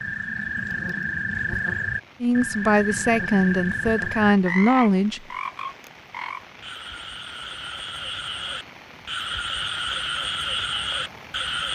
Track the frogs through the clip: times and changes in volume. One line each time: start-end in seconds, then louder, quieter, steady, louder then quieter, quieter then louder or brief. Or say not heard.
0.0-11.7 quieter then louder.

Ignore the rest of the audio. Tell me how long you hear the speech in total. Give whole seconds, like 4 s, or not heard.
3 s.